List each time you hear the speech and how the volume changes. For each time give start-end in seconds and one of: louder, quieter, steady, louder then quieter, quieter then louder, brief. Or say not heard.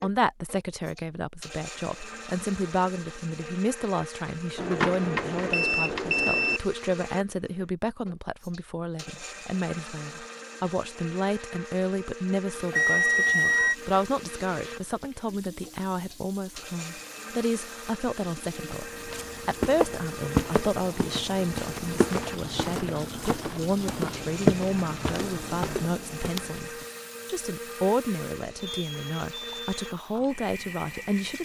0.0-31.4 steady.